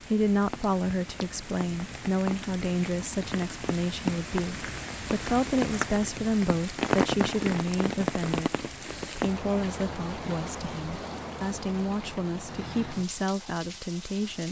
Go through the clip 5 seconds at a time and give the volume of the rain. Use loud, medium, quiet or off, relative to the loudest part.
medium, loud, medium.